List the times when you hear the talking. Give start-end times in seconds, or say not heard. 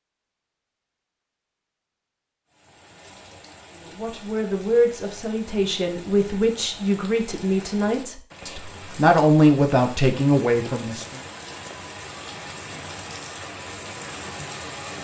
3.7-11.2.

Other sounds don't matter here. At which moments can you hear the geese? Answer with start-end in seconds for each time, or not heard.
not heard.